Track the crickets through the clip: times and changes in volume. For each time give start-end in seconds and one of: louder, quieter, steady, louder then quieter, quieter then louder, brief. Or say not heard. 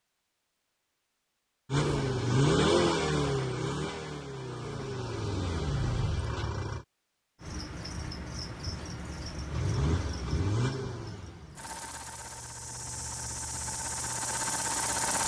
7.4-15.2 quieter then louder.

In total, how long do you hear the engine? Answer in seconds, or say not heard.
11 s.